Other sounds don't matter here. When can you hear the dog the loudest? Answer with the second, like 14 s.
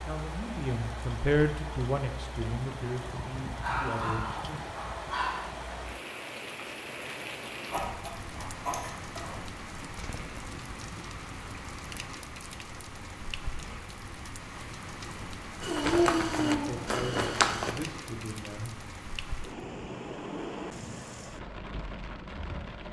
16 s.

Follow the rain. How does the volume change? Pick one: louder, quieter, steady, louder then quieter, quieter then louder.
steady.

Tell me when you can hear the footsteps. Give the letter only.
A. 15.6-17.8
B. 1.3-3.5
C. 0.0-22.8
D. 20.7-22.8
A.